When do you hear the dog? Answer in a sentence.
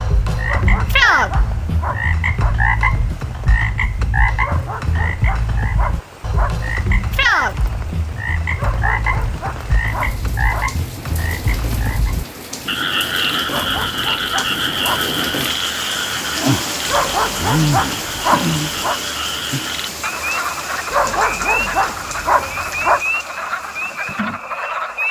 The dog can be heard from 0.5 to 2.5 s, from 4.4 to 6.5 s, from 8.6 to 10.7 s, from 13.4 to 15.1 s, from 16.9 to 19.0 s and from 20.9 to 23.0 s.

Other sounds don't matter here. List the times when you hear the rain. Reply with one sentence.
The rain can be heard from 0.0 to 25.0 s.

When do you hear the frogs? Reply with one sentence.
The frogs can be heard from 0.0 to 25.0 s.